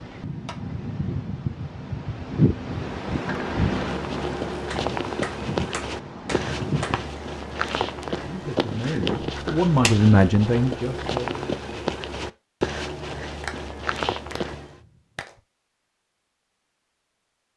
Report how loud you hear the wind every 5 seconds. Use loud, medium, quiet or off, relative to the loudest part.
loud, medium, off, off.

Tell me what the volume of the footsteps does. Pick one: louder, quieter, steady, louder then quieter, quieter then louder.
steady.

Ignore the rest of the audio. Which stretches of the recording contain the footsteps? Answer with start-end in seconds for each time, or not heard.
3.6-14.8.